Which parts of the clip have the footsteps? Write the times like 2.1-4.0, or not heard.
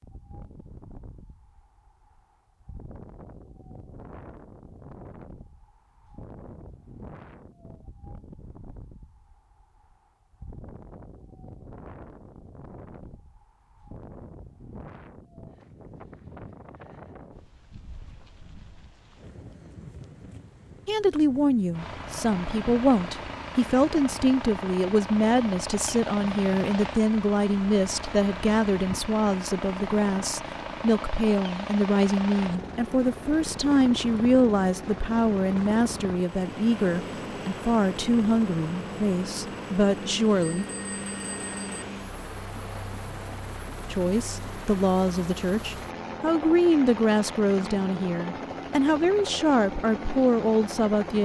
not heard.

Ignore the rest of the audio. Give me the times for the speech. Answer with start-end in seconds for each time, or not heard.
20.9-40.6, 43.9-51.2.